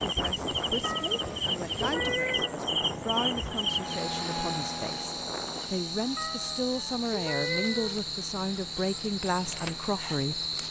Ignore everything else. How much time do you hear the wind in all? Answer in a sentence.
The wind can be heard for 6 seconds in total.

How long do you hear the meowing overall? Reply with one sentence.
You can hear the meowing for 4 seconds altogether.